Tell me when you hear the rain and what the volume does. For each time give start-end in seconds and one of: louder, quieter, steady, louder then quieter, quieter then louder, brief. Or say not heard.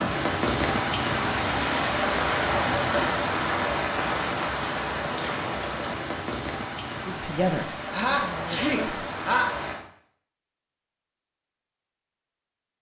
0.0-9.8 quieter.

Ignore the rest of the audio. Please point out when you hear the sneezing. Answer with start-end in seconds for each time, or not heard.
7.8-9.6.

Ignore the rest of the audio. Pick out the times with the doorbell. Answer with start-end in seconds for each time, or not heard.
not heard.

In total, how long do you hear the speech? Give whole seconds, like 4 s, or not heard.
2 s.